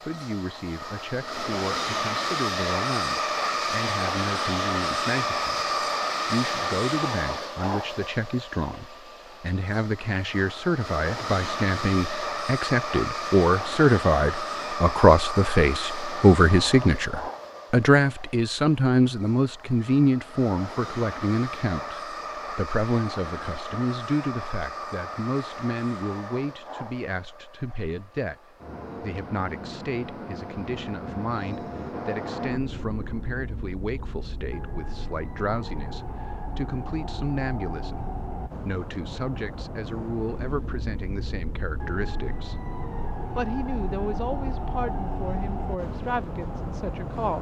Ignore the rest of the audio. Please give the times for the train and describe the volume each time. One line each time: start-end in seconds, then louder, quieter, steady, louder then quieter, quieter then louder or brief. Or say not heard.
0.0-47.3 quieter.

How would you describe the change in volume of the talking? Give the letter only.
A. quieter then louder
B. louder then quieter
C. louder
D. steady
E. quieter
B.